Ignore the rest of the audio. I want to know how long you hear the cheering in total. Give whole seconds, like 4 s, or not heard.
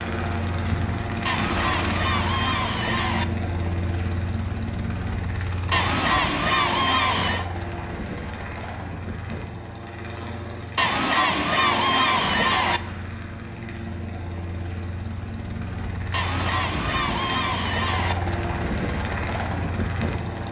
8 s.